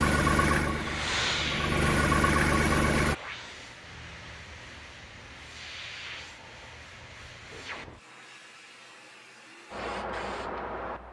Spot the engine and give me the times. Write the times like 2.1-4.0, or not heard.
0.0-3.1.